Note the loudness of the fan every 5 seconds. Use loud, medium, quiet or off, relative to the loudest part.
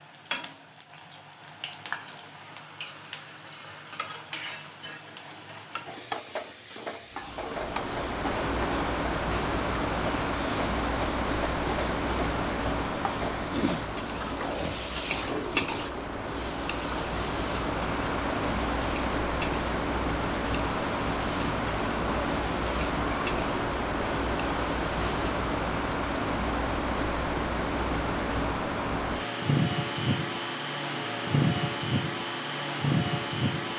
off, loud, loud, loud, loud, loud, loud.